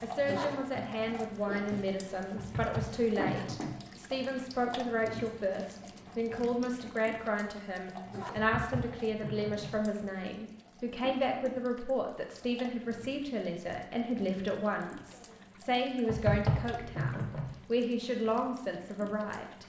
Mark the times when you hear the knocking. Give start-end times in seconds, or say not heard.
2.4-3.8, 8.3-9.8, 16.1-17.5.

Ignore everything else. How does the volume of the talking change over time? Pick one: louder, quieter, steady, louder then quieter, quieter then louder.
steady.